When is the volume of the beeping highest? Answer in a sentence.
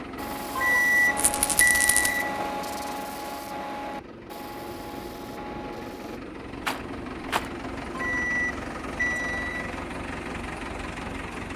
The loudest moment of the beeping is at 1 second.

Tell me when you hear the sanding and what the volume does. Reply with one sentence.
You can hear the sanding from 0.1 to 6.2 s, getting quieter.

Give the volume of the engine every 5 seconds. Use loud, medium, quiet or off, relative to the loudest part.
medium, loud, loud.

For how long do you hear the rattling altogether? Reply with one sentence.
The rattling can be heard for 2 seconds in total.